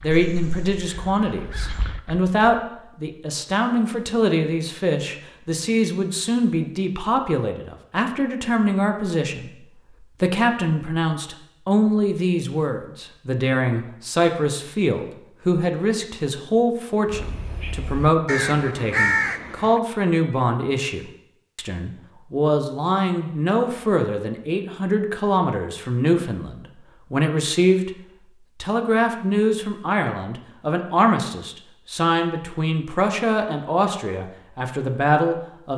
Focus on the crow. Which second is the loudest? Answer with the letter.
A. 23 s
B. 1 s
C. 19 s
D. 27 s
C.